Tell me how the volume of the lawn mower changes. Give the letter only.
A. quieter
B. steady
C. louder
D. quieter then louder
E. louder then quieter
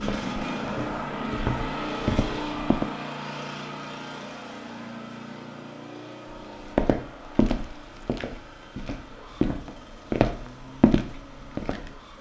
A.